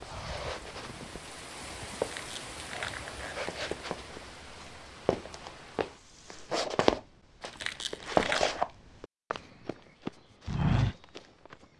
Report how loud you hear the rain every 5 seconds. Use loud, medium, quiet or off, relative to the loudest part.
loud, medium, off.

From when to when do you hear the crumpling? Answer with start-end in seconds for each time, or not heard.
1.9-3.9, 7.4-8.5.